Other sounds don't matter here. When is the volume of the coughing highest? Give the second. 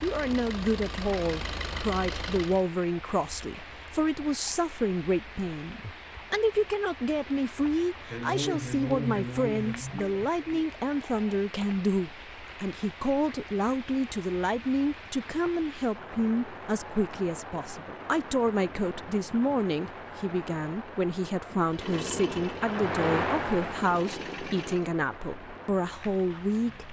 9 s.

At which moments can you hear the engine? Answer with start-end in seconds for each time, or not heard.
0.0-2.6, 21.7-24.9.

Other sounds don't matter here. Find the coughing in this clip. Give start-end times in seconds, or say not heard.
8.1-10.7.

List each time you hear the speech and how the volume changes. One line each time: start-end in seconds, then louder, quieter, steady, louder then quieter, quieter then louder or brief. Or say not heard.
0.0-26.8 steady.